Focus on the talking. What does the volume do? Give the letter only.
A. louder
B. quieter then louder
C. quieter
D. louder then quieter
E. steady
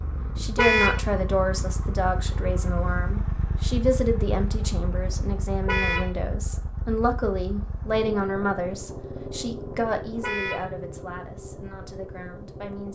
C.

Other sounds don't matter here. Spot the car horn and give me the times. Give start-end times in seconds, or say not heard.
0.6-1.1, 5.7-6.2, 10.2-10.7.